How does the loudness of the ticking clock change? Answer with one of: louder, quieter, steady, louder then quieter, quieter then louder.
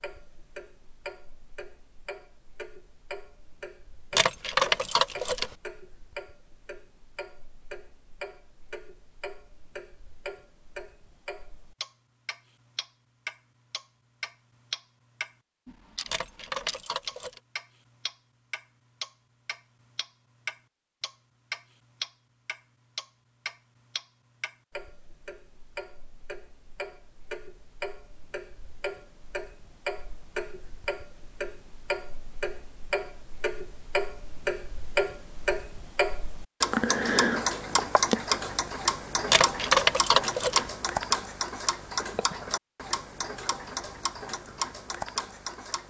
louder.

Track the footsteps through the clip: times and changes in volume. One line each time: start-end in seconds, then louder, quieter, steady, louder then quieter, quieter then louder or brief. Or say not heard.
not heard.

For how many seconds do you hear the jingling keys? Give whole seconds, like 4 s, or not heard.
4 s.